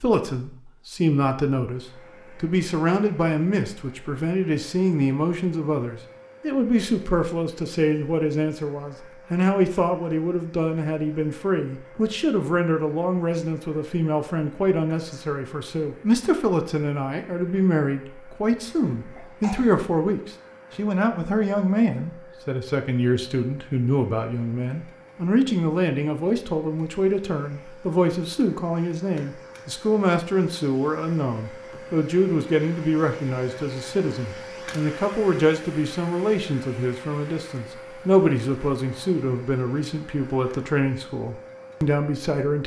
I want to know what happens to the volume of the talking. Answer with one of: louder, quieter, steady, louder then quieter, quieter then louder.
steady.